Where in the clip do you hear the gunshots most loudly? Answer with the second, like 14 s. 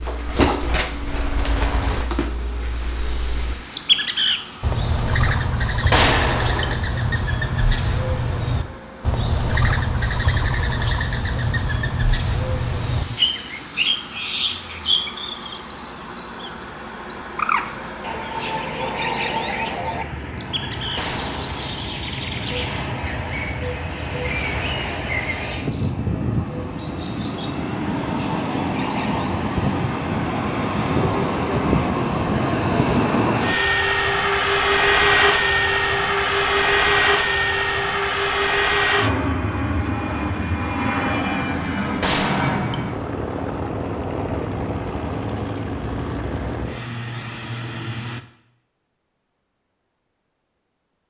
6 s.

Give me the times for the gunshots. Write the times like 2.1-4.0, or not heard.
5.9-6.8, 20.9-21.7, 42.0-42.9.